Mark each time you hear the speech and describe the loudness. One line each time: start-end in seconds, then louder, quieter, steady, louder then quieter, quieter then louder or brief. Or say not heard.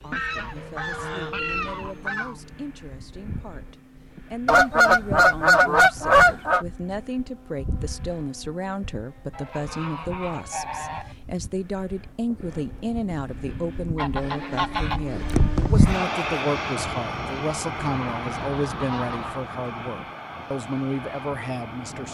0.0-22.0 louder.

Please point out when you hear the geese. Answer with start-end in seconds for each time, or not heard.
0.1-2.4, 4.5-6.7, 9.3-11.2, 13.9-16.0, 17.8-19.4.